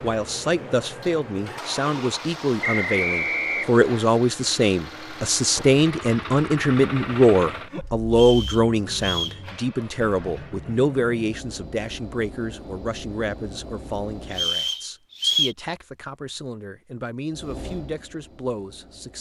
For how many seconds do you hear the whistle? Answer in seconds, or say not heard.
4 s.